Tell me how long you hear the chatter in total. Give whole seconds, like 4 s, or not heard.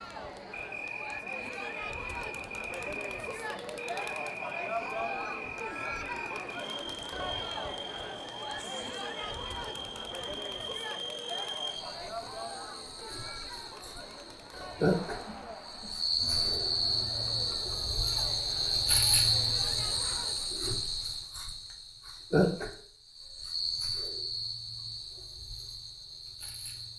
21 s.